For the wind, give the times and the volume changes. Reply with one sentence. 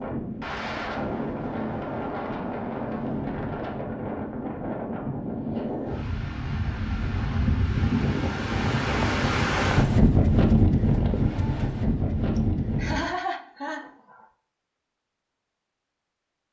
The wind can be heard from 0.0 to 13.0 s, getting louder.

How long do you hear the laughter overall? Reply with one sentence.
The laughter can be heard for 2 seconds in total.